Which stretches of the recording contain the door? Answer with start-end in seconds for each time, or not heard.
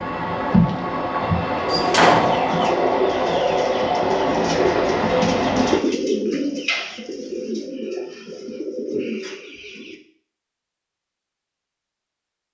1.7-2.7.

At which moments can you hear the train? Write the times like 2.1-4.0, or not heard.
0.0-5.8.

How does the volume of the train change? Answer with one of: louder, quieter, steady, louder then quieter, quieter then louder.
steady.